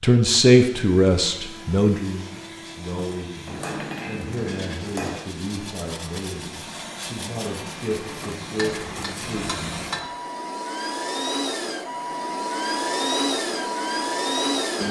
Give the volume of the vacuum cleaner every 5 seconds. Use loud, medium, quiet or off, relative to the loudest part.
quiet, medium, loud.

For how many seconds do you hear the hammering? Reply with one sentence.
The hammering can be heard for 3 seconds in total.